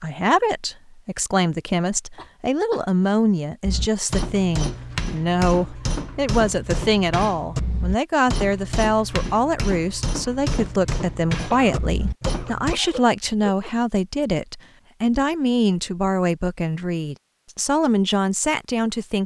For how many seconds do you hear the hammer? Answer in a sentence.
You can hear the hammer for 9 seconds altogether.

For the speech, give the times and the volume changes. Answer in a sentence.
You can hear the speech from 0.0 to 19.2 s, at a steady volume.